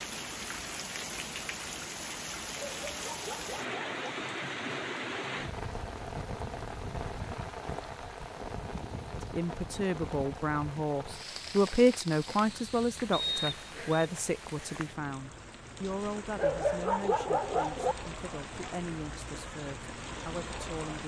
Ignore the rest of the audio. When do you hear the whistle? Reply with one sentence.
You can hear the whistle from 13.1 to 14.0 s.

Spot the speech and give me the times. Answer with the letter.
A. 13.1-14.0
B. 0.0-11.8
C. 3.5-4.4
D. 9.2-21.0
D.